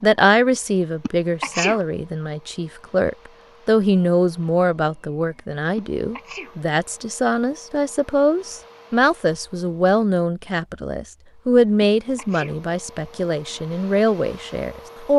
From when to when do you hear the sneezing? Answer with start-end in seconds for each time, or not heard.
1.0-1.9, 5.8-6.5, 11.8-12.6.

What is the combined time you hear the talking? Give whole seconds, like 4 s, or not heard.
15 s.